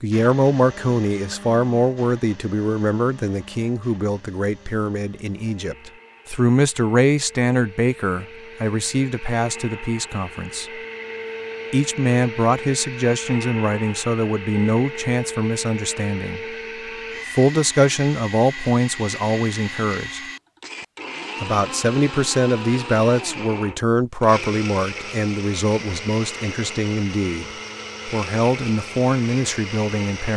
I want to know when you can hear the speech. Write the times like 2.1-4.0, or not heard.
0.0-10.8, 11.7-16.4, 17.3-20.2, 21.4-30.3.